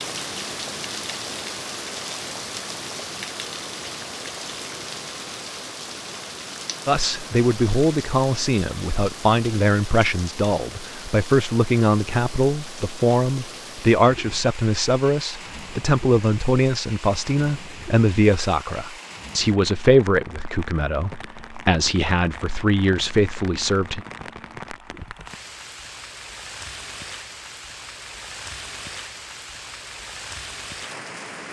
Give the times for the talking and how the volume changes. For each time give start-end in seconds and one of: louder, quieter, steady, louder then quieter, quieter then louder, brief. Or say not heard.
6.8-24.1 steady.